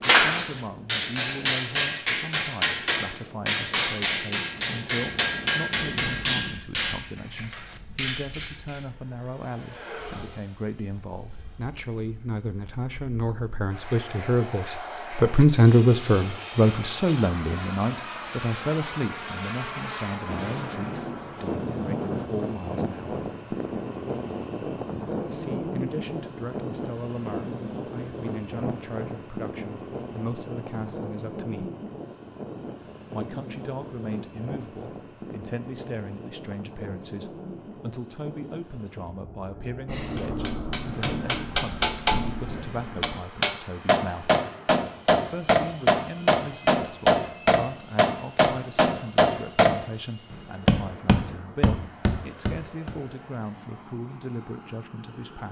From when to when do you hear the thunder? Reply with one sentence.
You can hear the thunder from 4.6 to 6.5 s, from 20.2 to 22.3 s and from 39.9 to 43.2 s.